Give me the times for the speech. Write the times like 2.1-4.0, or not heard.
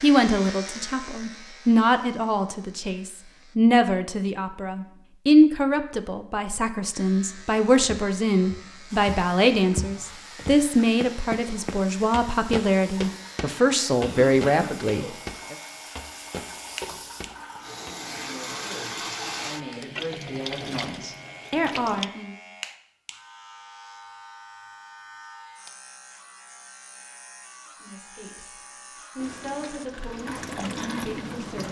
0.0-15.6, 17.9-22.4, 27.8-28.6, 29.1-31.6.